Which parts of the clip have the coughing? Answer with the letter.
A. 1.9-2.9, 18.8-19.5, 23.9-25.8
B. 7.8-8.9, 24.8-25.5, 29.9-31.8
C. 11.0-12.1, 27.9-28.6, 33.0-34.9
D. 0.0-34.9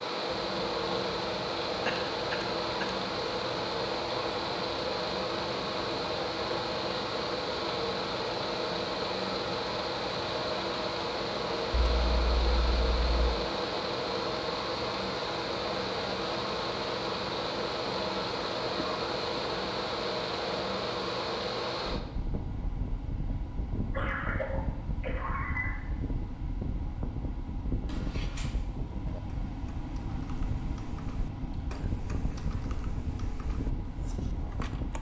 A.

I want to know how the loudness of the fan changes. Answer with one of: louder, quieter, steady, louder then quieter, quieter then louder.
quieter.